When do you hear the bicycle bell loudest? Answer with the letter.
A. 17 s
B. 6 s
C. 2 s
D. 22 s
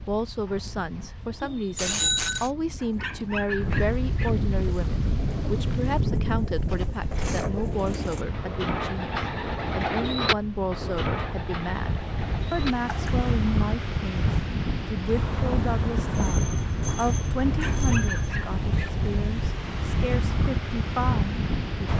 C.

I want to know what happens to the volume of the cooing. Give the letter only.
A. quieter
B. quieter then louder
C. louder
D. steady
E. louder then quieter
E.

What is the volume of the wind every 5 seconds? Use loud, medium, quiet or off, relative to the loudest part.
medium, loud, loud, loud, loud.